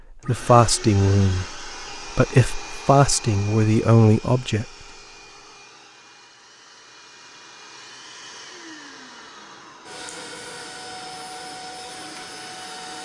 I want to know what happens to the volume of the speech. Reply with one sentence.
The volume of the speech goes down, then up.